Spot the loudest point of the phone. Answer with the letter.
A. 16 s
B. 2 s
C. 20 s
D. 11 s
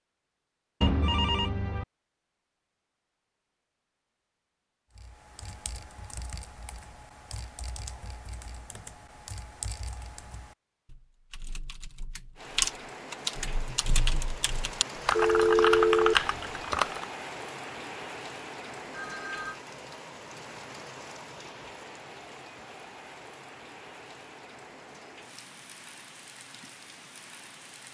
A.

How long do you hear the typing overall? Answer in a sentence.
You can hear the typing for 12 seconds altogether.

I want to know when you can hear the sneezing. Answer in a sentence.
You can't hear the sneezing here.